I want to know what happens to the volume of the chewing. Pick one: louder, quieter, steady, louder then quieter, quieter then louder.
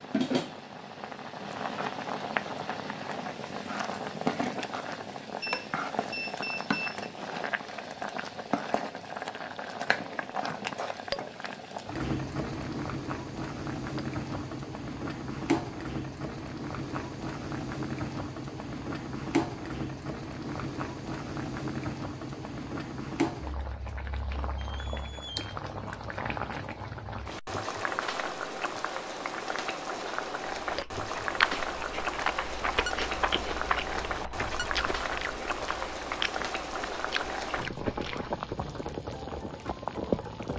quieter.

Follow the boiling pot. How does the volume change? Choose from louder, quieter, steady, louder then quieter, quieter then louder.
steady.